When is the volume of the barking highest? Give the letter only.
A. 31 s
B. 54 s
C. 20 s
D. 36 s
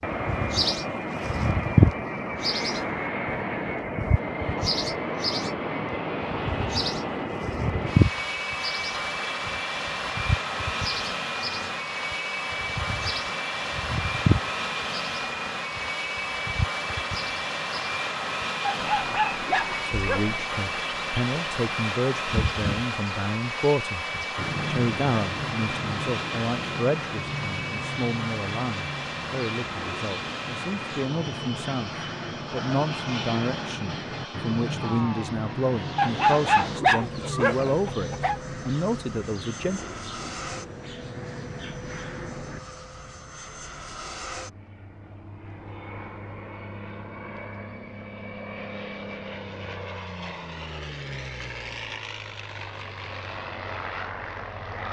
D.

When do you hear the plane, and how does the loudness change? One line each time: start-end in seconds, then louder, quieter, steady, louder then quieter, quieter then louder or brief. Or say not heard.
0.0-54.8 quieter.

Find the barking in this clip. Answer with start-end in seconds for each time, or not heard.
18.6-20.4, 36.0-38.4.